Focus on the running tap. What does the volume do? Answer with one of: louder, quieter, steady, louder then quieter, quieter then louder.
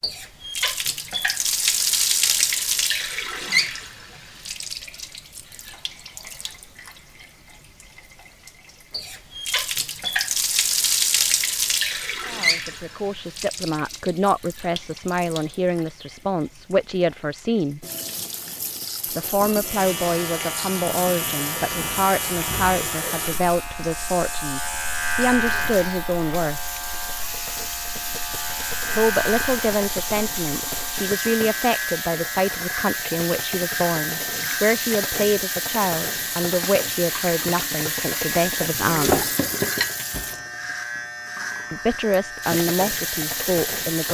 quieter then louder.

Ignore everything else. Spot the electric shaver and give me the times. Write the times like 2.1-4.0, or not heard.
19.6-44.1.